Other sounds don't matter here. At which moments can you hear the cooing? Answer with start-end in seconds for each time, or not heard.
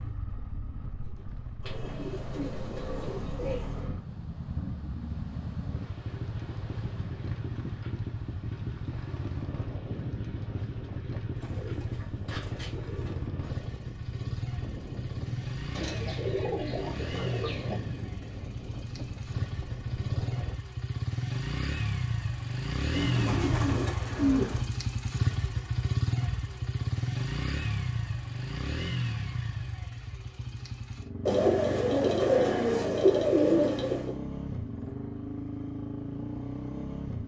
1.6-3.9, 11.3-13.2, 15.7-17.8, 22.9-24.7, 31.2-34.1.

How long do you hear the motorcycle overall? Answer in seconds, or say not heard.
37 s.